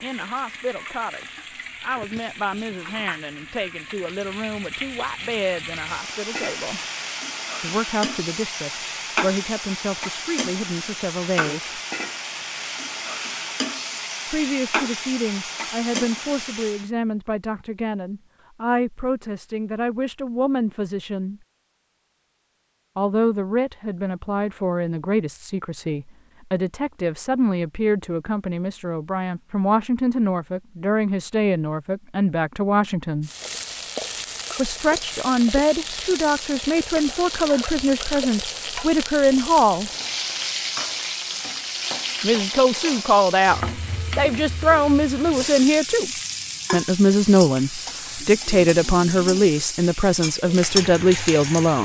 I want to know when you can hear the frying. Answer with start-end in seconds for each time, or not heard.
0.0-16.9, 33.2-51.7.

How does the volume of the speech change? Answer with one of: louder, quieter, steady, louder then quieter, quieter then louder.
louder.